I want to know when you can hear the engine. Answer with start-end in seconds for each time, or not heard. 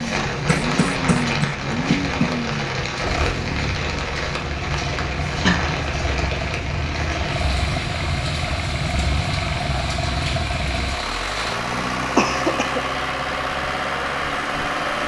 0.0-15.0.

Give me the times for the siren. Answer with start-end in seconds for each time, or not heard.
not heard.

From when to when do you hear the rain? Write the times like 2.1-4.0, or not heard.
0.0-11.6.